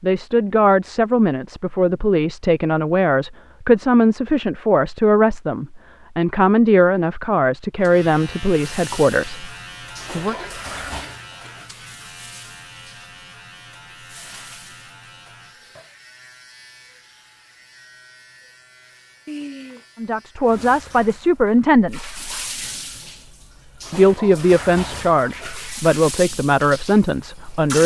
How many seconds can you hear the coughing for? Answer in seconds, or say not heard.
2 s.